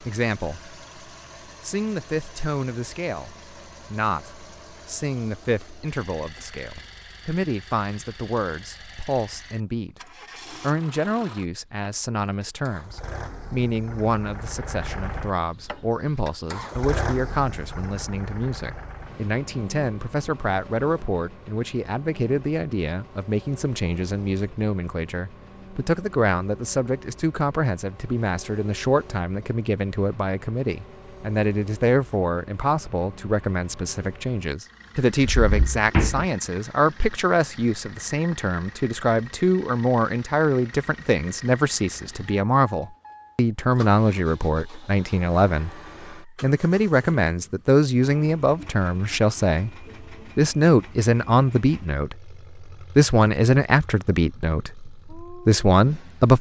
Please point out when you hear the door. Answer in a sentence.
The door can be heard from 35.2 to 36.2 s.